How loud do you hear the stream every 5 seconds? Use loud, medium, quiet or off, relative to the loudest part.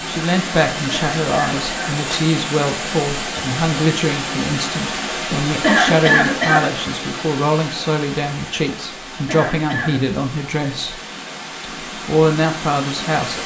loud, loud, medium.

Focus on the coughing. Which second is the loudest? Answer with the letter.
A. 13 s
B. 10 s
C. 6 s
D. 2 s
C.